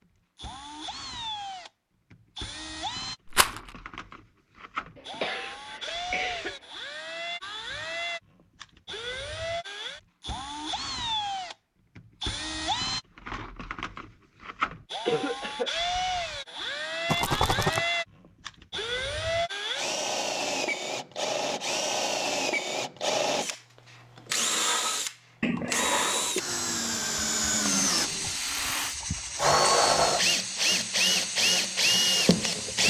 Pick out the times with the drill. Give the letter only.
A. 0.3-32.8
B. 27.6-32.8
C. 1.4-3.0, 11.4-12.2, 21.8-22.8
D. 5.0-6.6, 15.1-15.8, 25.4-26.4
A.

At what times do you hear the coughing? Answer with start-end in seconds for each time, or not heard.
5.0-6.6, 15.1-15.8, 25.4-26.4.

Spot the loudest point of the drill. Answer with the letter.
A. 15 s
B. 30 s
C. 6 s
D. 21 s
B.